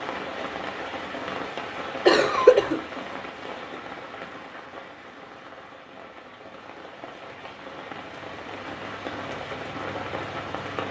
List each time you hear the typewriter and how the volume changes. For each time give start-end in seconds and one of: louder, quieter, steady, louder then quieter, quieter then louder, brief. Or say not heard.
not heard.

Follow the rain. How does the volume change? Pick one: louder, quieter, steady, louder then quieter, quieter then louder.
quieter then louder.